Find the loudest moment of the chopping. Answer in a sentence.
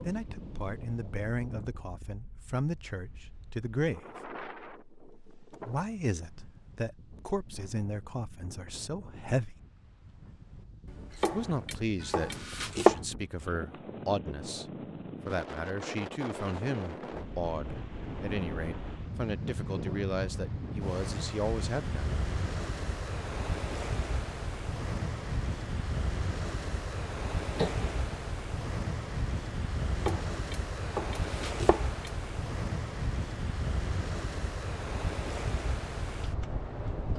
The volume of the chopping peaks at 13 seconds.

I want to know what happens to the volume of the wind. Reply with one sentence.
The loudness of the wind goes up.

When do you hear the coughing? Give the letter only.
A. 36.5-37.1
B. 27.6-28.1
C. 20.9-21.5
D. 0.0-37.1
B.